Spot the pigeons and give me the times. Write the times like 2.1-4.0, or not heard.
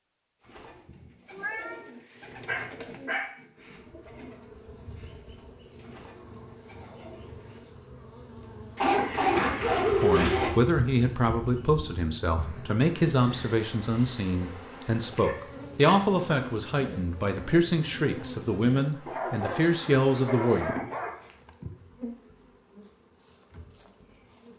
0.3-7.6.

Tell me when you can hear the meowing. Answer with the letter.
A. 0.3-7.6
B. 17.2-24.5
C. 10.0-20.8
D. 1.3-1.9
D.